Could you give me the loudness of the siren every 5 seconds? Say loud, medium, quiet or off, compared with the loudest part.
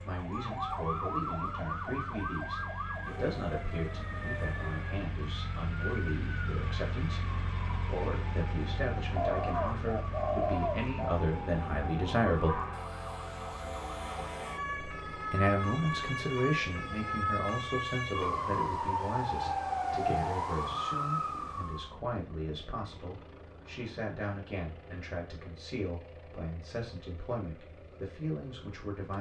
medium, medium, medium, loud, loud, off.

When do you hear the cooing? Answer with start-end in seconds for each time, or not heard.
9.2-11.2.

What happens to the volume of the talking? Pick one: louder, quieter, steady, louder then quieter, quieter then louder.
louder then quieter.